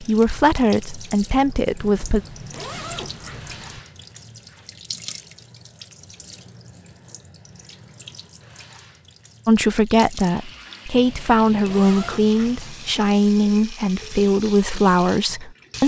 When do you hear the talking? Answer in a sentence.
The talking can be heard from 0.0 to 2.2 s and from 9.4 to 15.8 s.